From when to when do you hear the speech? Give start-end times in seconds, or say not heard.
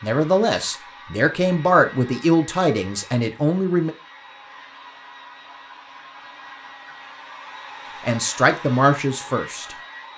0.0-3.9, 8.1-10.1.